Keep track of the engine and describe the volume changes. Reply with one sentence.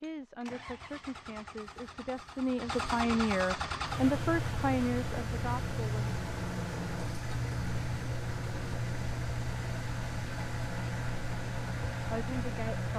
The loudness of the engine goes up.